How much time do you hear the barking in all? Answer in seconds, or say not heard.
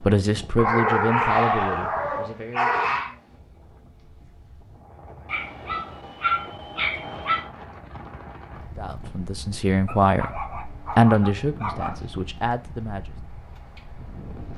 7 s.